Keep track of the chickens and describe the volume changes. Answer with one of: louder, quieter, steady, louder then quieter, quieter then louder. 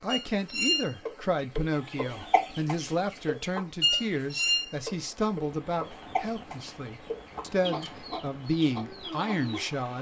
quieter.